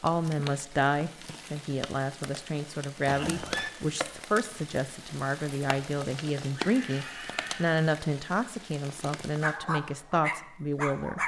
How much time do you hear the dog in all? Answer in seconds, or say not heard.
2 s.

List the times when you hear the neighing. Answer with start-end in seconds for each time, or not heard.
3.0-3.7, 6.5-7.7.